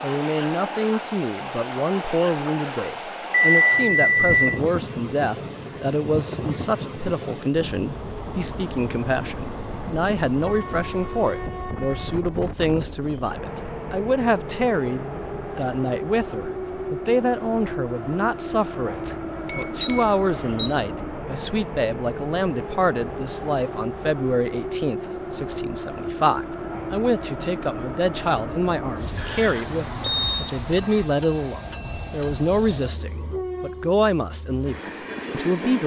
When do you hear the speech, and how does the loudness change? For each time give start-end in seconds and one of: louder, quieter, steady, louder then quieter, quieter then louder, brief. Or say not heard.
0.0-35.8 steady.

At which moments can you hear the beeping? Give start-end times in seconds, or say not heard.
3.5-4.6, 19.4-20.7, 29.1-31.0.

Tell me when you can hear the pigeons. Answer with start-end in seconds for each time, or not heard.
not heard.